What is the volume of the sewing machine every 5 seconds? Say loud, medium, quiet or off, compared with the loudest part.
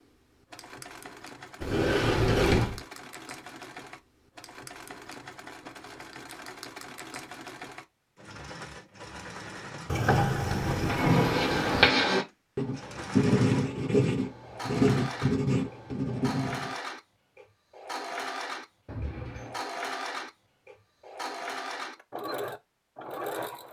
medium, medium, loud, loud, loud.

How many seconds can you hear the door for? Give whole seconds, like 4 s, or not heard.
4 s.